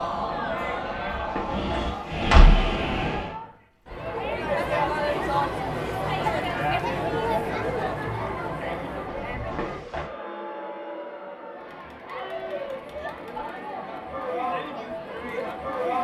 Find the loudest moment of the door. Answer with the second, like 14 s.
2 s.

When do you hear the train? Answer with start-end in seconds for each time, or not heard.
0.0-3.4.